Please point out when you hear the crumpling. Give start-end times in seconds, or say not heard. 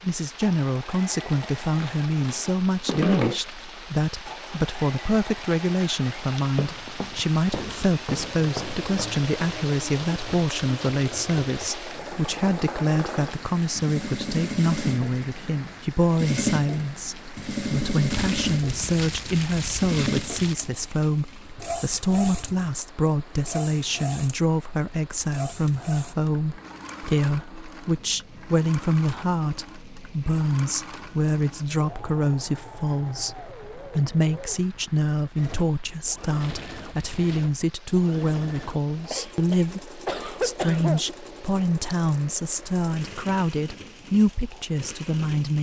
1.0-3.4, 18.1-20.6, 36.4-37.5.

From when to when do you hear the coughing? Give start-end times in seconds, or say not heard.
39.1-41.0.